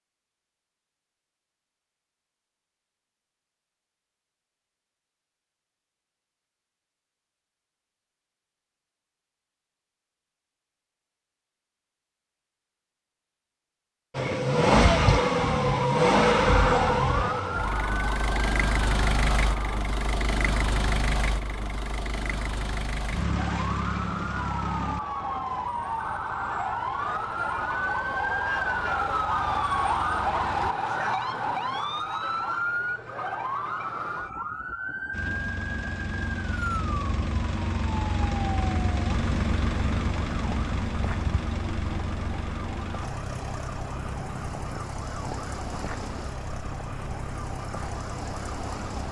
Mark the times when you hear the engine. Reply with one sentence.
The engine can be heard from 14.2 to 30.7 s and from 35.1 to 49.0 s.